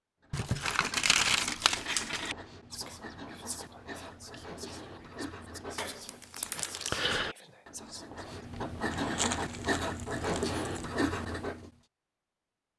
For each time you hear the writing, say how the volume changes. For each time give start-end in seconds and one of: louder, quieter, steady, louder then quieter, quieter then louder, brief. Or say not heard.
0.2-11.7 louder.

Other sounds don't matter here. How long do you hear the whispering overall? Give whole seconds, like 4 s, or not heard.
6 s.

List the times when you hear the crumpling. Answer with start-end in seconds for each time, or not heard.
0.3-2.4, 5.8-6.9, 8.9-10.8.